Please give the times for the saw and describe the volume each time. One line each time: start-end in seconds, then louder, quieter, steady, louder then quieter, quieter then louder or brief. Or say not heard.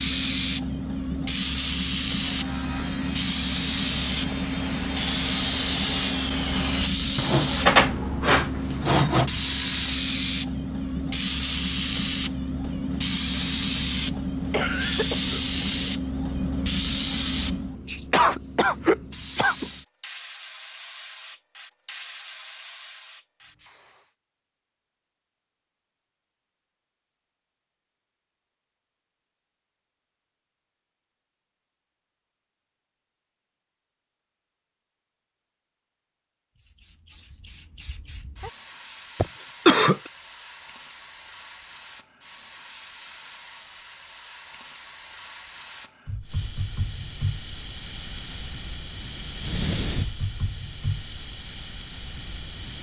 2.1-9.3 louder.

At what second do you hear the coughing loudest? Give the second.
40 s.